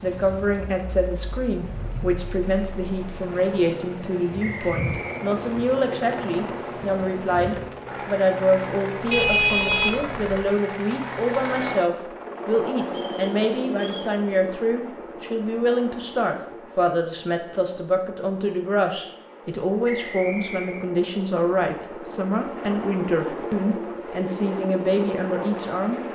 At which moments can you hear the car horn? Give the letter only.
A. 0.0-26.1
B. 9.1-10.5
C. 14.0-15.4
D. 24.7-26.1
B.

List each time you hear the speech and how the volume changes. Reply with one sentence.
You can hear the speech from 0.0 to 26.1 s, at a steady volume.